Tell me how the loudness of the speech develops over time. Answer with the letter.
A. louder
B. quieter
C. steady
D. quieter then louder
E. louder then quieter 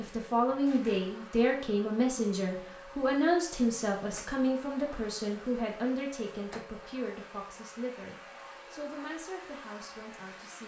B.